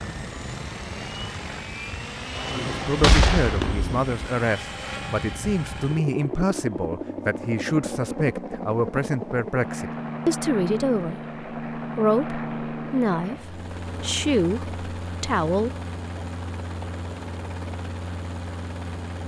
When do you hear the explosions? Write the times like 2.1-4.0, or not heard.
3.0-4.1.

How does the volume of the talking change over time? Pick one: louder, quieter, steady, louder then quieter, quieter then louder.
steady.